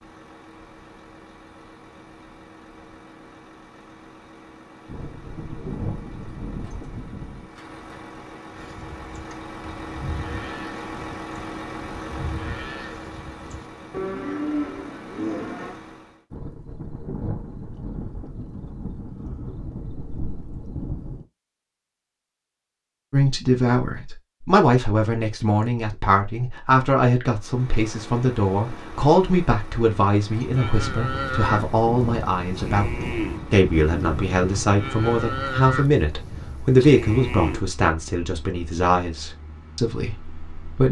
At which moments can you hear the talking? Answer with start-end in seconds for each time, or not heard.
23.1-40.8.